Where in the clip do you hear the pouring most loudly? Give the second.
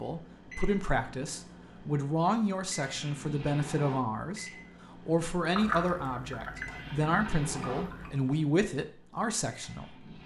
6 s.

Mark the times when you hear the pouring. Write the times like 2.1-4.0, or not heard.
5.5-8.2.